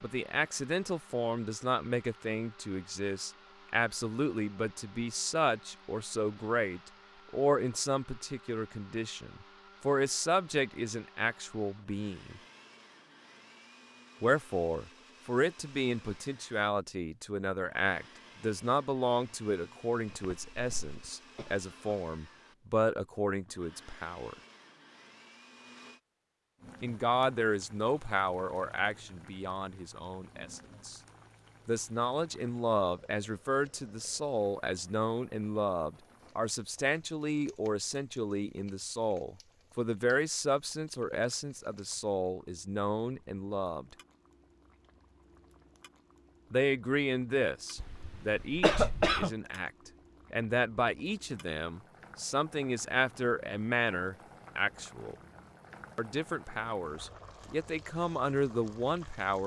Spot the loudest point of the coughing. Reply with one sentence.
The volume of the coughing peaks at 49 seconds.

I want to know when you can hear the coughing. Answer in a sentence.
The coughing can be heard from 20.1 to 21.9 s and from 47.8 to 49.3 s.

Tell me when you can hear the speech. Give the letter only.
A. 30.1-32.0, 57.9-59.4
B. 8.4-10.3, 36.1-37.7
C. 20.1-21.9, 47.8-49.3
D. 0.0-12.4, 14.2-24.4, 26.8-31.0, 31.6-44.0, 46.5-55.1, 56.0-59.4
D.